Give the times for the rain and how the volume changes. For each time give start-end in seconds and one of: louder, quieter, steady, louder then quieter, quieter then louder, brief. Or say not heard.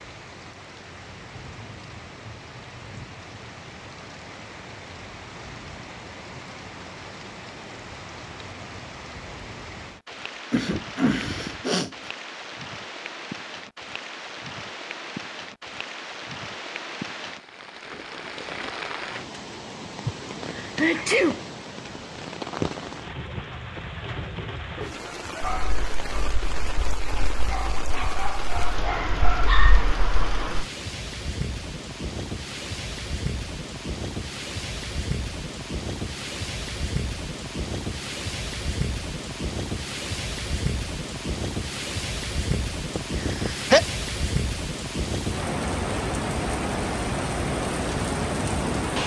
0.0-49.0 louder.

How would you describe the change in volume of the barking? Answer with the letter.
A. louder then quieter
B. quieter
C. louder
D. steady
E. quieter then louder
C.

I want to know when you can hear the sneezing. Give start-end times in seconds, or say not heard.
10.5-12.1, 20.1-21.4, 42.5-43.8.